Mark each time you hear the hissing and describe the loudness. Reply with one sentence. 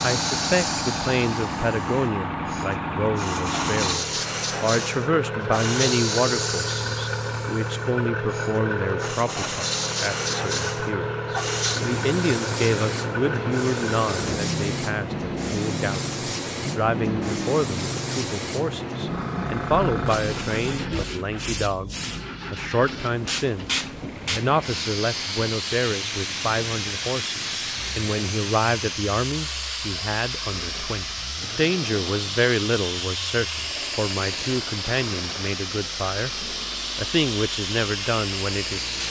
You can hear the hissing from 0.0 to 39.0 s, at a steady volume.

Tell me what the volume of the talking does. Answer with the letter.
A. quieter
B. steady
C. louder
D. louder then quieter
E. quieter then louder
B.